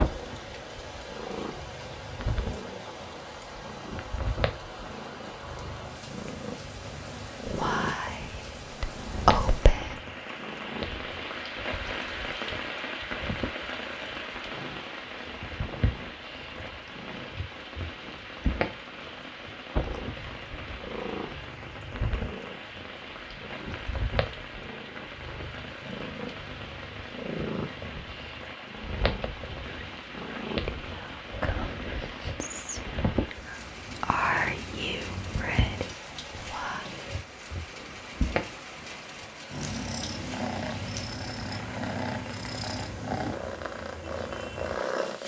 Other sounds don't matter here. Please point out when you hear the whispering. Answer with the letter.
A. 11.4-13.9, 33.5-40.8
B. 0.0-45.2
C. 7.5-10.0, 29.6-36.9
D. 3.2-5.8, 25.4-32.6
C.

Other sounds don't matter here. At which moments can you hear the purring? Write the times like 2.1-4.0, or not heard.
0.0-45.2.